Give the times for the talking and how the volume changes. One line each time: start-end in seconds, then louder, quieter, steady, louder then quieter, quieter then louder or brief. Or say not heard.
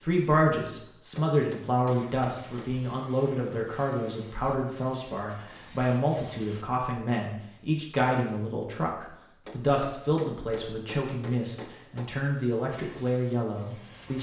0.0-14.1 steady.